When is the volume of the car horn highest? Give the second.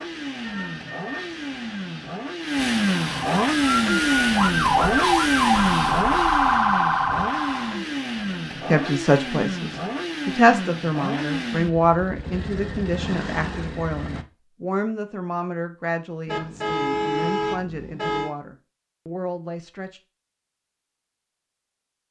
17 s.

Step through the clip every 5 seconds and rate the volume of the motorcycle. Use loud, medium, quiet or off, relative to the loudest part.
loud, loud, medium, off, off.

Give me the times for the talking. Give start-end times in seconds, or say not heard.
8.7-20.0.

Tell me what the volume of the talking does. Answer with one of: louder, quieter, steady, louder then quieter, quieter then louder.
quieter.